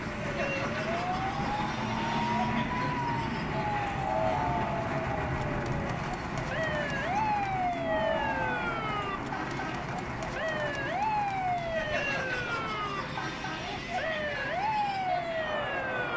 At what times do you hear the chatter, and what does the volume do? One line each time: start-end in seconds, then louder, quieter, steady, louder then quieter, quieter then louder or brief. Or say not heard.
0.0-16.1 steady.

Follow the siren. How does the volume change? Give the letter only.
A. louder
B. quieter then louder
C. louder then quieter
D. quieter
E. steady
E.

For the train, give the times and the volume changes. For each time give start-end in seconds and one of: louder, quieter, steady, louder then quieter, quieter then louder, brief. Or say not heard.
0.0-16.1 quieter.